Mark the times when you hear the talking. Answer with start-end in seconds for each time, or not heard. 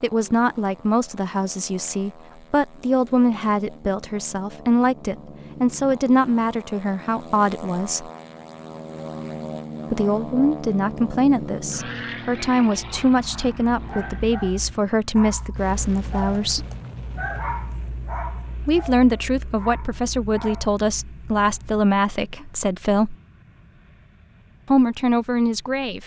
0.0-8.1, 9.9-16.6, 18.6-23.1, 24.7-26.0.